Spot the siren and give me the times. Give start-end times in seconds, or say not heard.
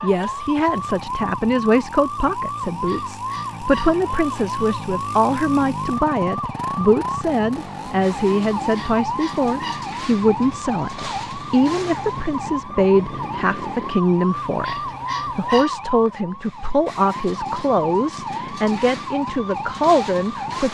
0.0-20.7.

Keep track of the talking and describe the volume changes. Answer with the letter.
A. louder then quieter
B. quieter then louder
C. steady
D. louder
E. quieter
C.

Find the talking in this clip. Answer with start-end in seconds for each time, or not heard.
0.0-20.7.